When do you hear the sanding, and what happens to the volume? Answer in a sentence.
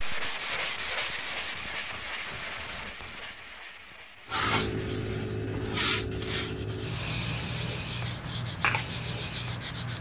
You can hear the sanding from 0.0 to 9.9 s, getting quieter then louder.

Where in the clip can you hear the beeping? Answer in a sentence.
You can't hear the beeping here.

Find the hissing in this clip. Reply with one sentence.
You can hear the hissing from 4.3 to 9.9 s.